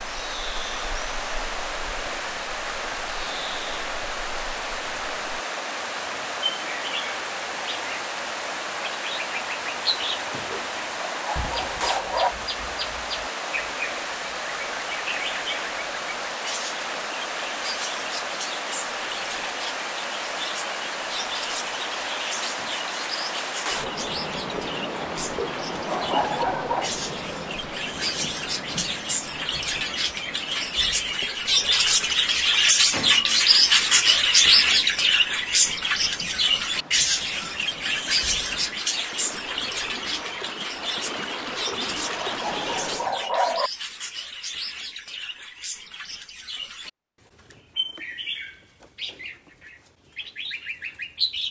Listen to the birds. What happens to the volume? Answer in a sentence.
The volume of the birds goes up, then down.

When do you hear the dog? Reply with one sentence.
The dog can be heard from 10.5 to 12.3 s, from 25.4 to 26.9 s and from 41.6 to 43.7 s.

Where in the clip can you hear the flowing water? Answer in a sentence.
The flowing water can be heard from 0.0 to 43.0 s.